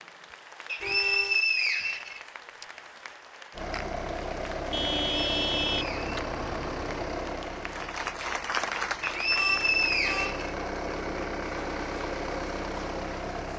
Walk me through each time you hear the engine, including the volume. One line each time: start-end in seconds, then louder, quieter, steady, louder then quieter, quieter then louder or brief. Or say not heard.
3.5-13.5 quieter then louder.